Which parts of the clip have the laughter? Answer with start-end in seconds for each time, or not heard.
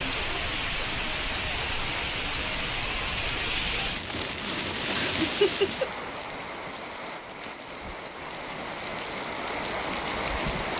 5.0-6.0.